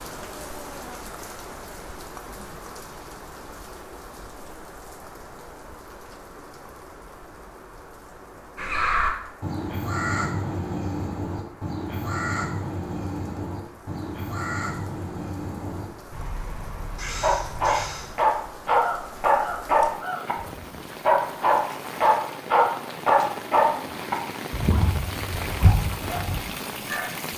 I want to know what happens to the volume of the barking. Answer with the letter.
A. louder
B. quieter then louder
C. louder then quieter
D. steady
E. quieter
E.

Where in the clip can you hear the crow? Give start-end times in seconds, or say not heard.
8.6-20.2.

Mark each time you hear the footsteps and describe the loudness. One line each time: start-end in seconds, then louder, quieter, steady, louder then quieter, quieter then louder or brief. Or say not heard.
not heard.